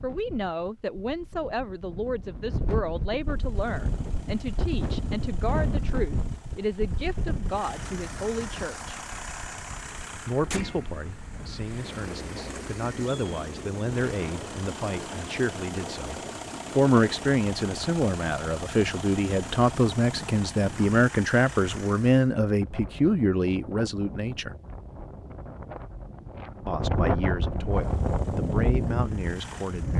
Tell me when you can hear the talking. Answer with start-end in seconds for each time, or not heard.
0.0-9.0, 10.2-24.6, 26.6-29.9.